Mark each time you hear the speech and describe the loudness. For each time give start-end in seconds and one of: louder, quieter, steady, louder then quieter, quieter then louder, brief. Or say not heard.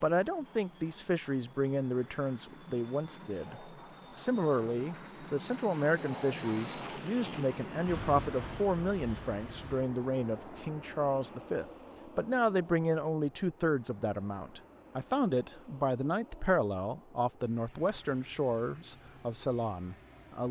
0.0-20.4 steady.